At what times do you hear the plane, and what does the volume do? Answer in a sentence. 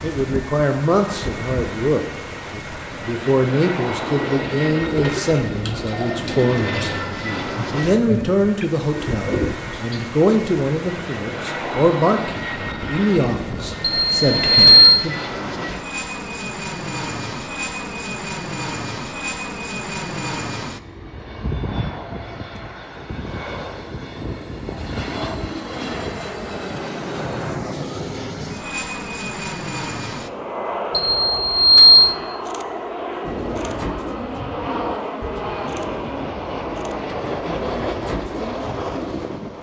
You can hear the plane from 0.0 to 39.5 s, at a steady volume.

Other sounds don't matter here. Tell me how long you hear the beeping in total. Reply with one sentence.
The beeping can be heard for 2 seconds in total.